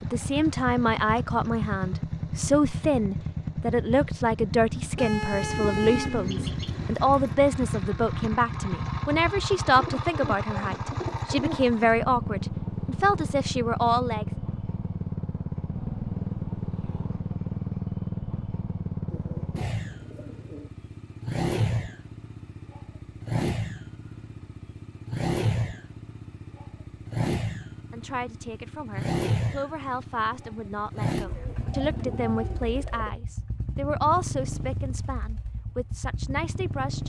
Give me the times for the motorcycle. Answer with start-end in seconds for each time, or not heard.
0.0-37.0.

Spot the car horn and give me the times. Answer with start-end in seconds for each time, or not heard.
5.0-6.2.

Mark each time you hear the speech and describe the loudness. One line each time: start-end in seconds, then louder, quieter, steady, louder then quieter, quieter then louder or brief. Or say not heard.
0.0-14.2 steady
27.9-37.0 louder then quieter.